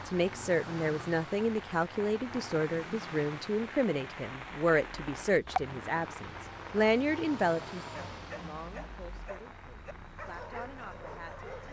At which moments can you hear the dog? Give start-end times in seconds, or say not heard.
8.1-11.6.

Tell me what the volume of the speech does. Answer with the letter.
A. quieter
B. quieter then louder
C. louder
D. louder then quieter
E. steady
A.